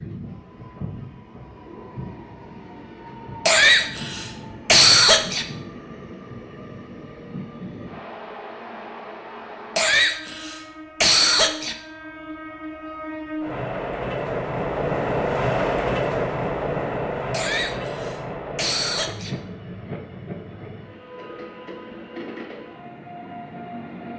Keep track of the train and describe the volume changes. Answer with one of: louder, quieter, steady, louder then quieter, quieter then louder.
louder then quieter.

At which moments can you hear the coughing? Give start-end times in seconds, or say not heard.
3.5-5.5, 9.8-11.8, 17.3-19.4.